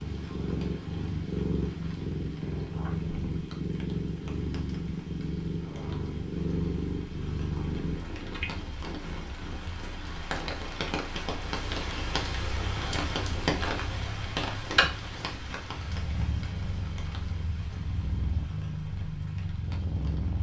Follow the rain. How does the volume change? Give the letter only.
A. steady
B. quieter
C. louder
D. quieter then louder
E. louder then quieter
E.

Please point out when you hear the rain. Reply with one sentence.
The rain can be heard from 0.0 to 20.3 s.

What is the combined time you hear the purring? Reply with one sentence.
You can hear the purring for 20 seconds altogether.